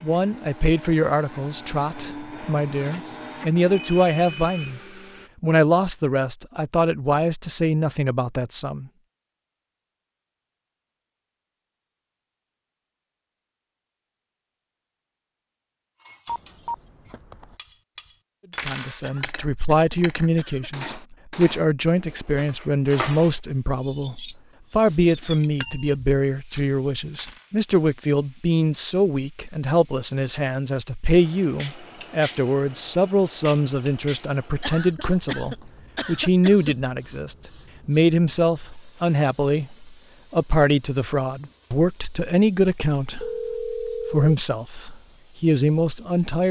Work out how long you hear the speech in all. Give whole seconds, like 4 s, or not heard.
36 s.